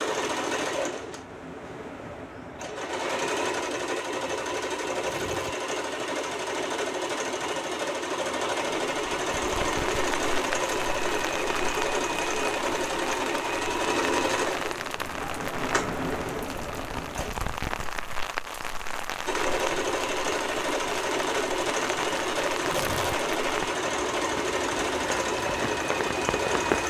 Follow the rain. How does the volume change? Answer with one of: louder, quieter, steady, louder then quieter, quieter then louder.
steady.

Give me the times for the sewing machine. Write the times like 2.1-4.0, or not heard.
0.0-17.3, 19.2-26.8.